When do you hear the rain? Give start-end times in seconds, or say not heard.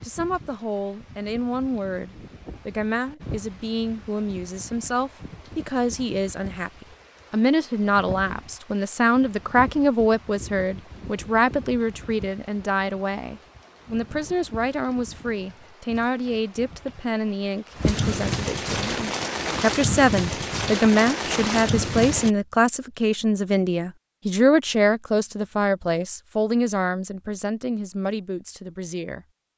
0.0-22.3.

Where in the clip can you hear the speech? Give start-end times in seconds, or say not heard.
0.0-29.2.